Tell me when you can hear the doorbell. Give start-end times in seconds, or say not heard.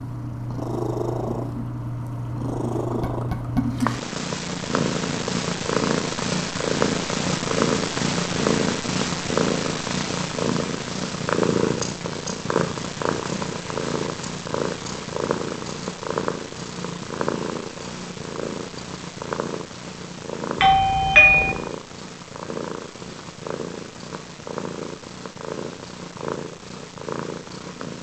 20.6-21.6.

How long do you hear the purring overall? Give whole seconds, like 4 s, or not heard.
28 s.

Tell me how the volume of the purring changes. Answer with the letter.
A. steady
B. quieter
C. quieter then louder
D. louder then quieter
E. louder
B.